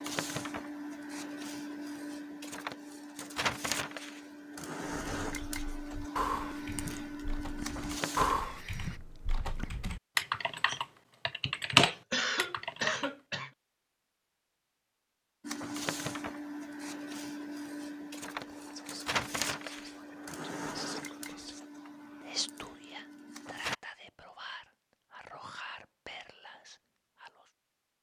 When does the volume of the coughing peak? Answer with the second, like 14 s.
12 s.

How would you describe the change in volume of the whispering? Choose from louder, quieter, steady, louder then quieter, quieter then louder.
louder then quieter.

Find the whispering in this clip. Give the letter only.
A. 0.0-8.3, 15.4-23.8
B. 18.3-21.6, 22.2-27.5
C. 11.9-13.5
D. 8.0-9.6
B.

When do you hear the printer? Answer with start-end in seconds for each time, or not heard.
0.0-8.3, 15.4-23.8.